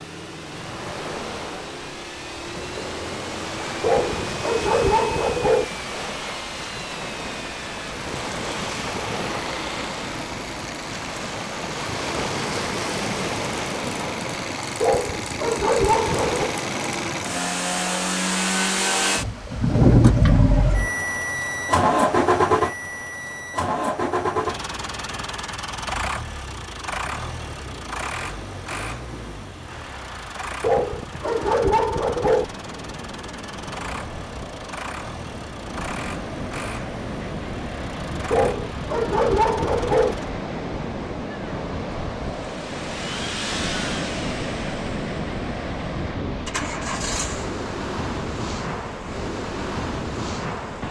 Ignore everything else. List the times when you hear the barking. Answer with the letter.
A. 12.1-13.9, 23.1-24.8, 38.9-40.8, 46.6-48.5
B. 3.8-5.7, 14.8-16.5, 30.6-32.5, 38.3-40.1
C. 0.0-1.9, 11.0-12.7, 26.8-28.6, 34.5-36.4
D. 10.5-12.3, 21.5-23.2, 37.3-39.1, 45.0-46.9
B.